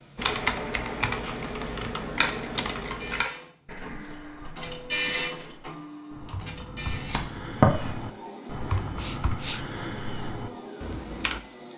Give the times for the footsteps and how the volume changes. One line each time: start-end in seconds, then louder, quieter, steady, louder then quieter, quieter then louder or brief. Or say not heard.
not heard.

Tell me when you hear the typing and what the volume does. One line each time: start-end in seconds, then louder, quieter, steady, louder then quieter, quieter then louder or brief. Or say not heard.
0.1-11.4 quieter then louder.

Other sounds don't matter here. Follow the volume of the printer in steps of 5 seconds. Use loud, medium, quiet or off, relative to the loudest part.
loud, loud, medium.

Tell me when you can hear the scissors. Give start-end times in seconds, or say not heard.
2.1-3.3, 6.8-7.9.